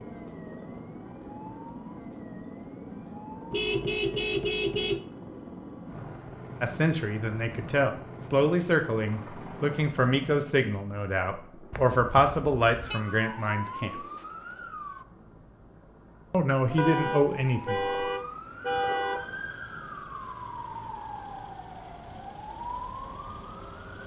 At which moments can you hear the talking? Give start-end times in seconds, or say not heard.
6.6-14.0, 16.3-17.9.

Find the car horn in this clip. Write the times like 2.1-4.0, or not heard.
3.5-5.0, 11.7-13.0, 16.8-19.4.